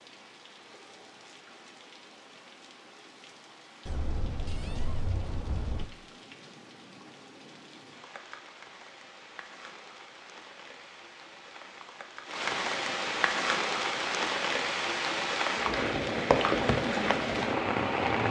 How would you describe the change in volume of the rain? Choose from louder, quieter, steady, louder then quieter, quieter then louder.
louder.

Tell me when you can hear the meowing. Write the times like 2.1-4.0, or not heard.
3.9-5.8.